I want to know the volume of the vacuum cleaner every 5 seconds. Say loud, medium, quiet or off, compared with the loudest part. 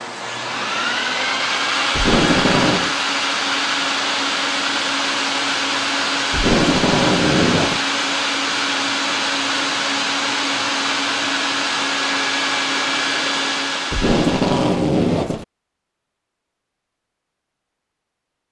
loud, loud, loud, off.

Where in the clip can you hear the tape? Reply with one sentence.
The tape can be heard from 1.9 to 3.0 s, from 6.3 to 7.8 s and from 13.9 to 15.4 s.